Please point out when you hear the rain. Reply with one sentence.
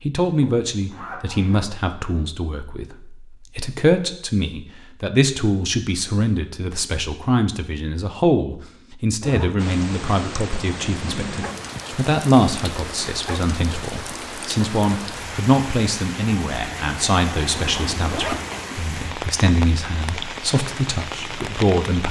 You can hear the rain from 9.6 to 22.0 s.